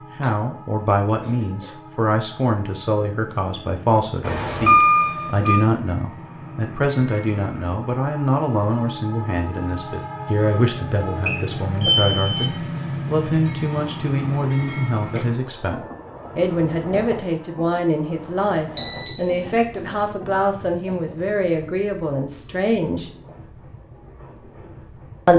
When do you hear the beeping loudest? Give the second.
5 s.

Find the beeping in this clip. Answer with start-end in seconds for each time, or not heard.
4.2-5.7, 11.2-12.5, 18.8-19.3.